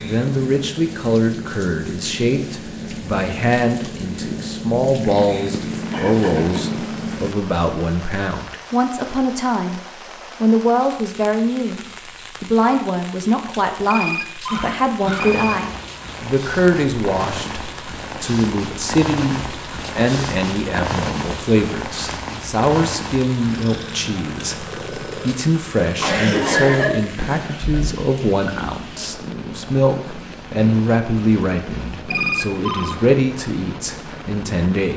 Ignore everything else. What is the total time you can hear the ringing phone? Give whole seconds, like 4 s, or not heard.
3 s.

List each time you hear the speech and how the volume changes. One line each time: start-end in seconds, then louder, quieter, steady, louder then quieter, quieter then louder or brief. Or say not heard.
0.0-9.8 steady
10.4-34.9 steady.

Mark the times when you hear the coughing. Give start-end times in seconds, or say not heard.
5.9-6.6, 14.4-15.3, 26.0-27.9.